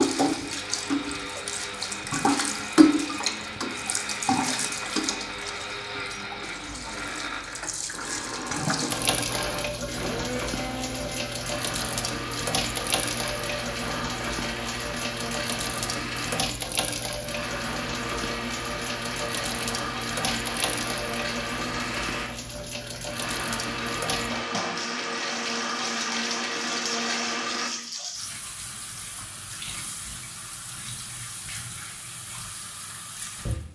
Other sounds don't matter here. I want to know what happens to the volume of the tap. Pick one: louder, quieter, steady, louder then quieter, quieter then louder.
quieter.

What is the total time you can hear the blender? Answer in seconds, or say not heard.
28 s.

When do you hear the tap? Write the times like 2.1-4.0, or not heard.
0.0-33.7.